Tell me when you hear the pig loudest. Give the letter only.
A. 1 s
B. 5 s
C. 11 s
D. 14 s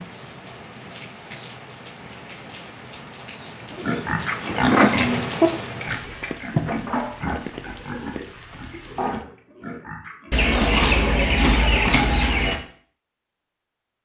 B.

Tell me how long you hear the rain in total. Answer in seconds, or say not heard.
9 s.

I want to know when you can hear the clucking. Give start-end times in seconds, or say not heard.
10.3-12.6.